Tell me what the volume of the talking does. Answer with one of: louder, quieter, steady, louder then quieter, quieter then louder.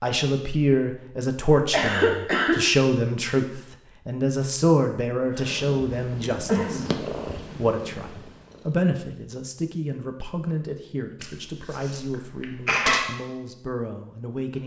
quieter.